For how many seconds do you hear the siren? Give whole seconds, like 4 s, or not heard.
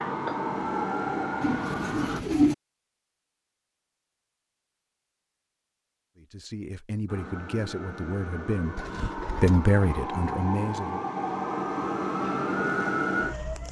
9 s.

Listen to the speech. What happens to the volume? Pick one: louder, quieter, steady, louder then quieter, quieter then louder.
louder then quieter.